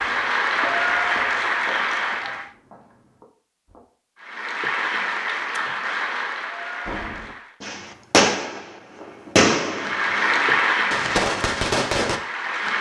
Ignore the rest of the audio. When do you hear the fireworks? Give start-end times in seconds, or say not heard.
6.8-12.2.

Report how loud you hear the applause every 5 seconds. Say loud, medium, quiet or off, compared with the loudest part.
loud, medium, loud.